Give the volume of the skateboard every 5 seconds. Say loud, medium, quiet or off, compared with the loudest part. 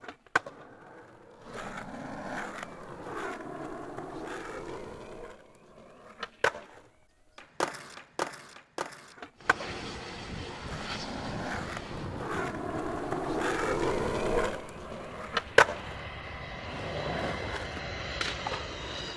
medium, medium, loud, loud.